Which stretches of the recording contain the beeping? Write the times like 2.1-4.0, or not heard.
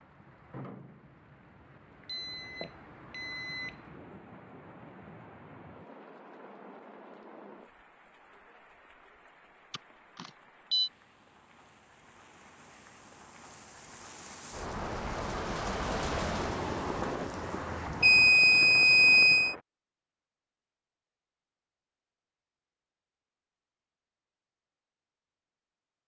2.0-3.7, 9.7-10.9, 18.0-19.6.